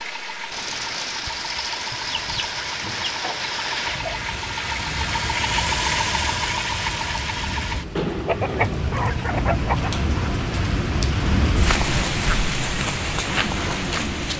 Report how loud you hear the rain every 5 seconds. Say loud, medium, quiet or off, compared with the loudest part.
medium, medium, loud.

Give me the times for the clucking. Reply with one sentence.
You can hear the clucking from 1.9 to 4.2 s and from 8.2 to 9.9 s.